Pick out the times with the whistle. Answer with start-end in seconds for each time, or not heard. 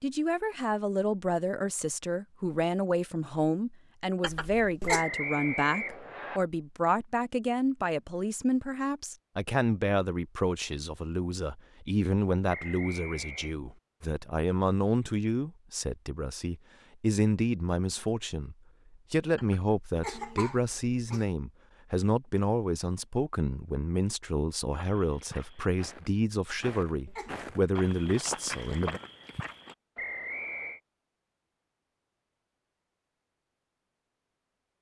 4.8-6.4, 12.4-13.6, 29.9-30.8.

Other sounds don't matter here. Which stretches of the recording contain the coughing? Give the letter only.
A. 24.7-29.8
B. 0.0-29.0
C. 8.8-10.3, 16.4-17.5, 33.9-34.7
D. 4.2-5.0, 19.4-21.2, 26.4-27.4
D.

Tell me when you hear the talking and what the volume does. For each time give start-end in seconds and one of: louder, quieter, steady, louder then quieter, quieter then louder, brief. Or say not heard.
0.0-29.0 steady.